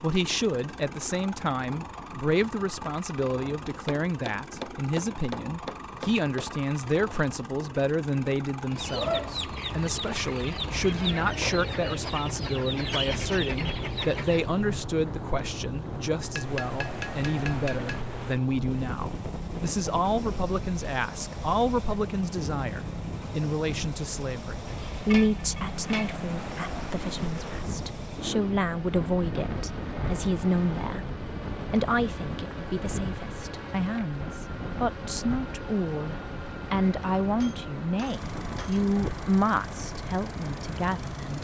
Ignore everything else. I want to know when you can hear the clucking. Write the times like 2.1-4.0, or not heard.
8.7-14.6.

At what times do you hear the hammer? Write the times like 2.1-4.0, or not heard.
3.9-6.5, 16.2-18.0, 24.6-26.2, 37.4-38.9.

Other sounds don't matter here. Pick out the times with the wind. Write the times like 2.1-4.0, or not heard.
13.1-41.3.